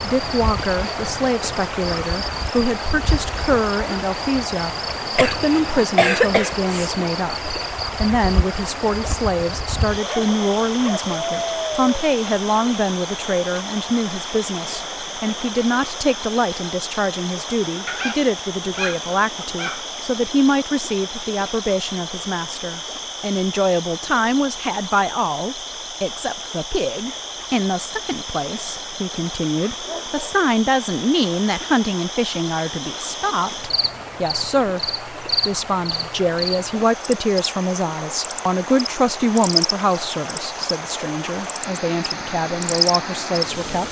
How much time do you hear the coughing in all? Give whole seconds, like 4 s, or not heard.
2 s.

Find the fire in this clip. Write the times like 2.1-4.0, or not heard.
not heard.